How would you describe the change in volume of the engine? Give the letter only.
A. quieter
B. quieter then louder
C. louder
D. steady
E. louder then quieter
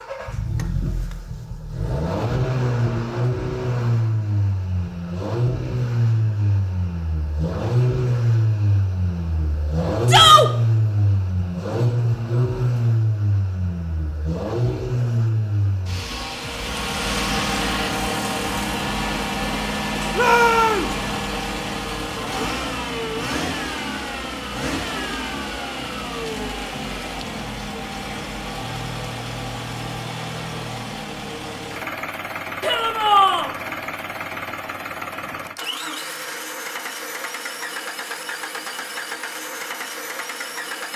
A.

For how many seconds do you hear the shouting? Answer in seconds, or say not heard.
2 s.